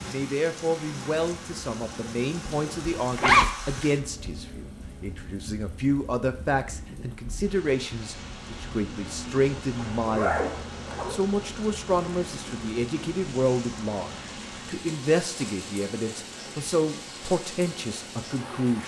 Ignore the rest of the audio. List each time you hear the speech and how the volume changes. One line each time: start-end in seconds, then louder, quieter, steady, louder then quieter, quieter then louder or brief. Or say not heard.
0.0-18.8 steady.